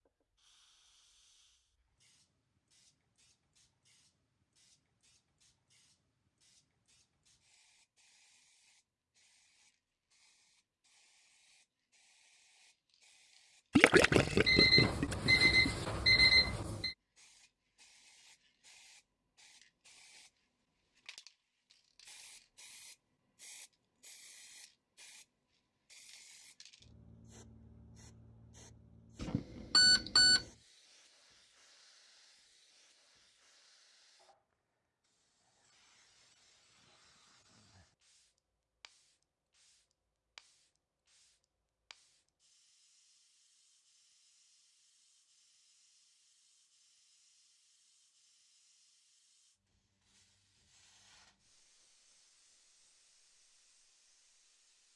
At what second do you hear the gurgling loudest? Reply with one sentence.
The volume of the gurgling peaks at 14 seconds.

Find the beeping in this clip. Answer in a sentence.
The beeping can be heard from 14.4 to 16.9 s and from 29.2 to 30.4 s.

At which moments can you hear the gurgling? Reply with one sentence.
You can hear the gurgling from 13.8 to 15.7 s.